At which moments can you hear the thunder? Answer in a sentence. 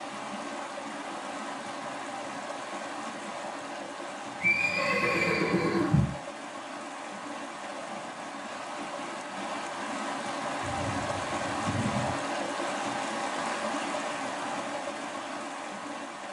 The thunder can be heard from 10.6 to 12.2 s.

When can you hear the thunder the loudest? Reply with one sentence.
The loudest moment of the thunder is at 12 seconds.